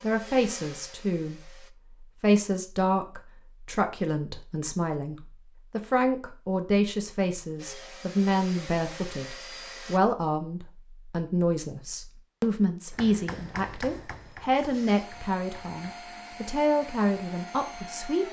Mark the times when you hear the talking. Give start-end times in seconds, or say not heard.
0.0-1.5, 2.2-18.2.